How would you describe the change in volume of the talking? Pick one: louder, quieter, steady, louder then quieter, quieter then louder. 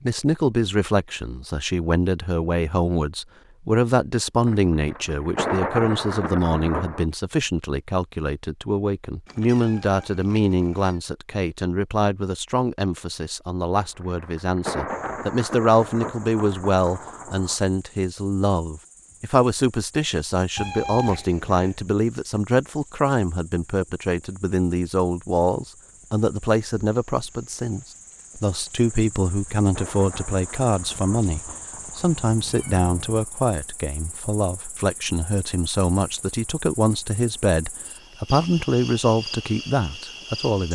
steady.